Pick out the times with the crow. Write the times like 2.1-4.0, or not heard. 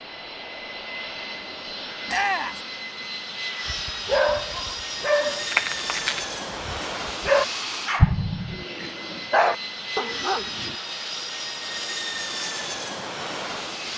not heard.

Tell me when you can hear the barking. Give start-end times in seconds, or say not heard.
3.6-10.8.